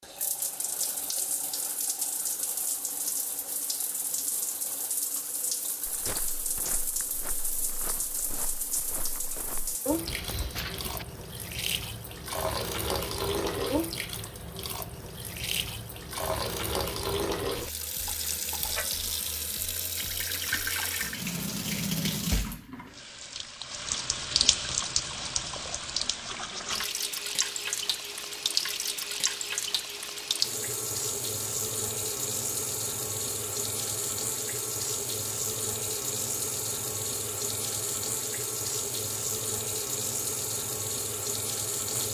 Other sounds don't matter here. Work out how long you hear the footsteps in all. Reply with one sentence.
You can hear the footsteps for 5 seconds altogether.